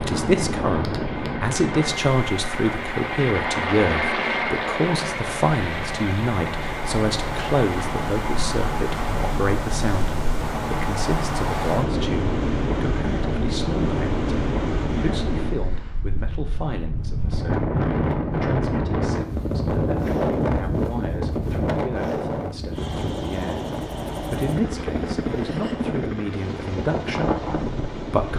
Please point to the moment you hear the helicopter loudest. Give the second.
4 s.